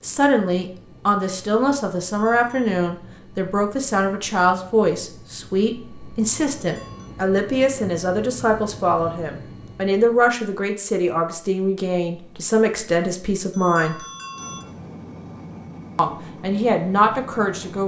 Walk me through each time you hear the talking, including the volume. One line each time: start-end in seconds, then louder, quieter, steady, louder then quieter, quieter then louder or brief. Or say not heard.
0.0-13.9 steady
15.9-17.8 brief.